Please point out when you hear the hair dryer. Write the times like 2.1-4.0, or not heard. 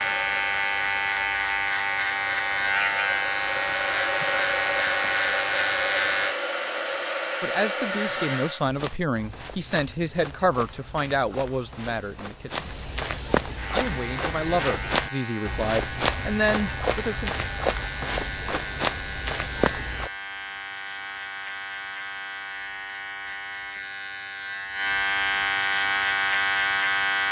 0.0-8.7.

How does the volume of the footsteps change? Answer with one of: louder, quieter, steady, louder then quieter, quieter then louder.
louder.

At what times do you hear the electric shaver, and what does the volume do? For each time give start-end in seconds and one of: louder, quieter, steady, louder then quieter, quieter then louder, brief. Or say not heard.
0.0-6.3 steady
13.6-27.2 louder.